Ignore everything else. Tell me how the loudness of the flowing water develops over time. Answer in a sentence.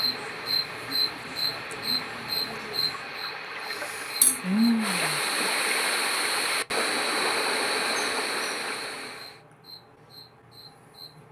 The volume of the flowing water goes up.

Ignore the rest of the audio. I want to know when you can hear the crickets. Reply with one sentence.
You can hear the crickets from 0.0 to 11.2 s.